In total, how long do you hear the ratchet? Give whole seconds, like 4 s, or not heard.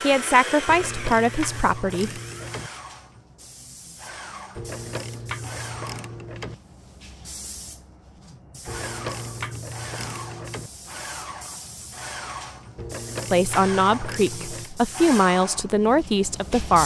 8 s.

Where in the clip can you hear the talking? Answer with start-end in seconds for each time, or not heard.
0.0-2.1, 13.3-16.8.